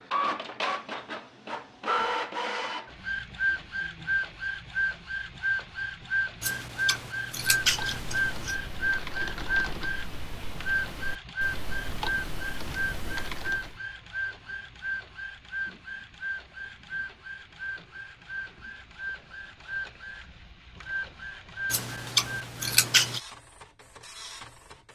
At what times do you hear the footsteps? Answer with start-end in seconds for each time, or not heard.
not heard.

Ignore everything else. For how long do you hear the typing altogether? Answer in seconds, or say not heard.
6 s.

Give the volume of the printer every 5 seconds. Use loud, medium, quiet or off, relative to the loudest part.
loud, loud, loud, medium, medium.